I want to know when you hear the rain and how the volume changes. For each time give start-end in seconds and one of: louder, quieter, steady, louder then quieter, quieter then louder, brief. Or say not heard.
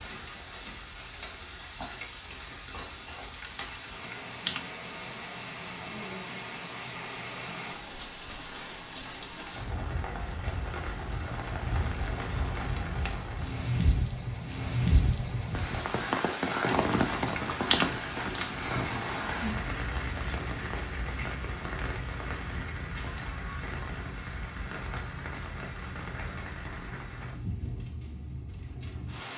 0.0-29.3 louder then quieter.